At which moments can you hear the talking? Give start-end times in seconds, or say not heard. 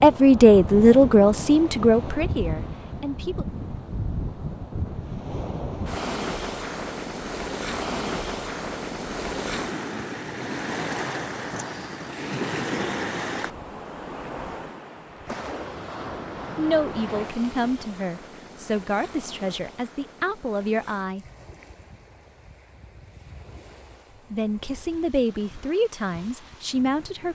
0.0-3.5, 16.6-21.2, 24.3-27.3.